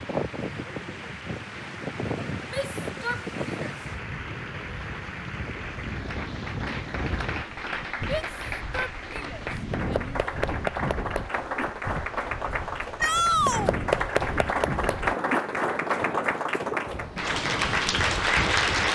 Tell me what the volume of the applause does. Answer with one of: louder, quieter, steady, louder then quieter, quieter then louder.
louder.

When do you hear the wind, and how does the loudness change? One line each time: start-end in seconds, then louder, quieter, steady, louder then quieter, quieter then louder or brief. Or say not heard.
0.0-18.9 steady.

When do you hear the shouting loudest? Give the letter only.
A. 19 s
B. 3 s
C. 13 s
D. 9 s
C.